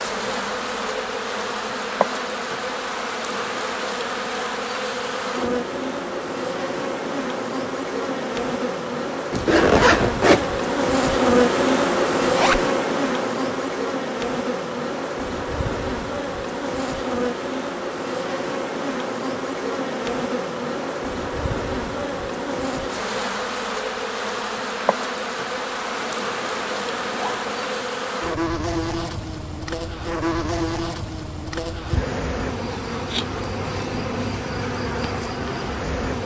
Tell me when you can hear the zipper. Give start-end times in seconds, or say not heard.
9.3-10.4, 12.2-12.7, 25.9-27.9.